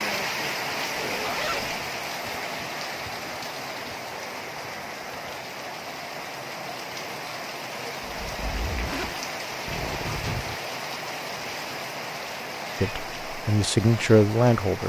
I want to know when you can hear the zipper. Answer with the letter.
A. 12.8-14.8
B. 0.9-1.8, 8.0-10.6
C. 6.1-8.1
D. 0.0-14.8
B.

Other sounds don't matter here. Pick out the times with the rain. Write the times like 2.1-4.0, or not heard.
0.0-14.8.